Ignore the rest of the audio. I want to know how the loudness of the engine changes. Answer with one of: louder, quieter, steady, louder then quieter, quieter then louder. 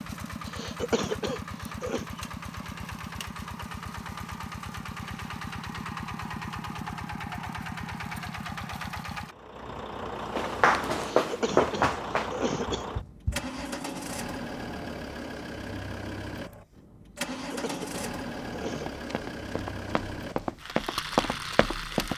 steady.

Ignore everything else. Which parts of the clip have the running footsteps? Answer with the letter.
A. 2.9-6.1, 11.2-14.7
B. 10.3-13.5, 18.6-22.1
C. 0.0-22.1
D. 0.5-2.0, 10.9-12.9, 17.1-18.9
B.